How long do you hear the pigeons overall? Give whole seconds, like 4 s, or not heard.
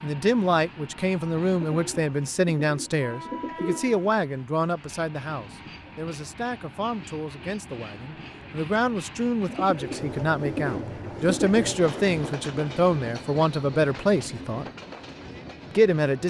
5 s.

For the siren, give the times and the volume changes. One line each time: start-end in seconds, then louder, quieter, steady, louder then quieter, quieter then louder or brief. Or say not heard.
not heard.